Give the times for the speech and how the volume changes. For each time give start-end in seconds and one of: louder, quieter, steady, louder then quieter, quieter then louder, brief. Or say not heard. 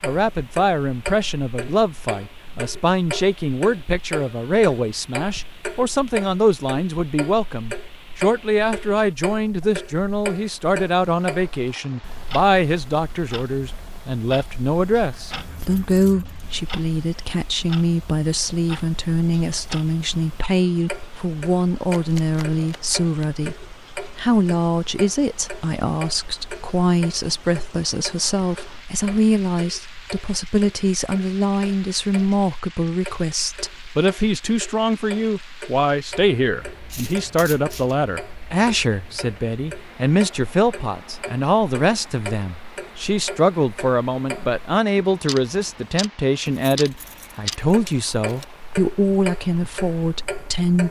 0.0-50.8 steady.